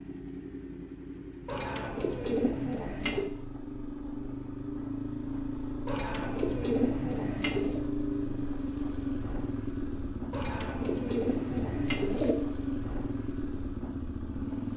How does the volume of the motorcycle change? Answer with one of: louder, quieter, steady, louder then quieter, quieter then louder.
louder.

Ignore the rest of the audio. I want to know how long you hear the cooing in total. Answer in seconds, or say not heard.
6 s.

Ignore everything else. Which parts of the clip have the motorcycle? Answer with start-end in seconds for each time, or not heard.
0.0-14.7.